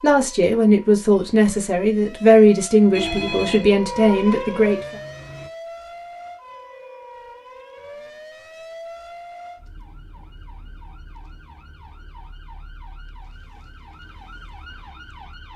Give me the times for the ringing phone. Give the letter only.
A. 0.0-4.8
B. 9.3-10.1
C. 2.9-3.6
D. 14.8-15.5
C.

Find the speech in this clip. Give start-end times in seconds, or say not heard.
0.0-4.8.